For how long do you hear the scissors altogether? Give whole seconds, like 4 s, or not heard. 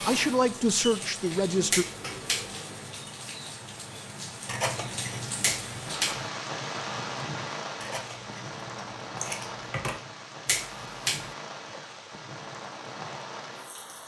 3 s.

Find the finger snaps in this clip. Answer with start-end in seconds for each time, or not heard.
1.7-2.5, 5.4-6.2, 10.4-11.3.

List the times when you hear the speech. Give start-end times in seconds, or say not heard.
0.0-1.9.